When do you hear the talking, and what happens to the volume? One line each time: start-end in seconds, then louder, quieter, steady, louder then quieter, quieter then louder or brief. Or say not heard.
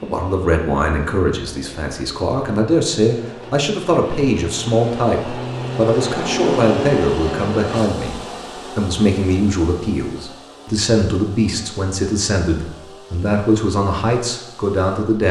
0.0-15.2 steady.